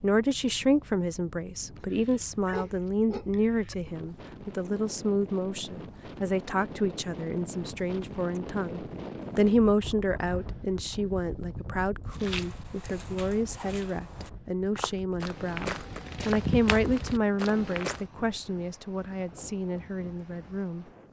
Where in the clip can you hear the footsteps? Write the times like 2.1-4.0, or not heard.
12.1-18.1.